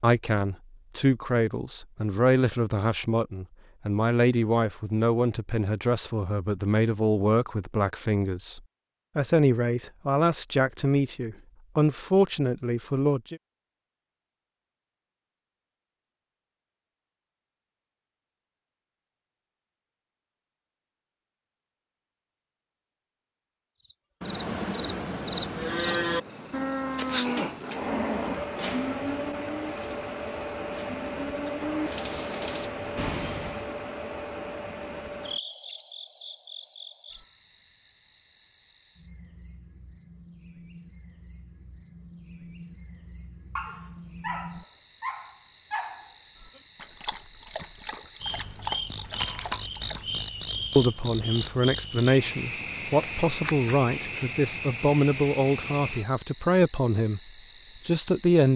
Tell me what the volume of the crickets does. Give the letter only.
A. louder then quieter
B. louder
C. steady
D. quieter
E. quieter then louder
E.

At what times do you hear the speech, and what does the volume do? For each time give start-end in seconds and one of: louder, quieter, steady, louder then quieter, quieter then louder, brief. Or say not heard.
0.0-13.4 steady
50.8-57.2 steady
57.9-58.5 brief.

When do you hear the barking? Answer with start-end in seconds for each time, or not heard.
43.5-50.0.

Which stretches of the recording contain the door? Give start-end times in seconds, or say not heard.
not heard.